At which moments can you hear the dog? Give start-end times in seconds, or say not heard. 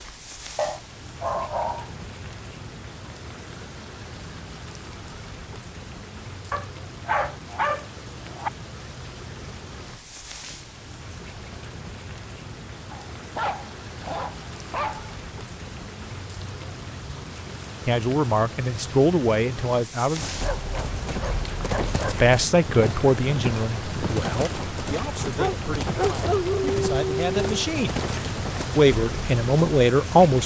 0.6-1.9, 6.5-8.5, 12.9-15.2, 20.4-22.3, 25.4-27.6.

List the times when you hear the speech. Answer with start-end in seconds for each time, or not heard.
17.9-20.4, 22.1-27.9, 28.8-30.4.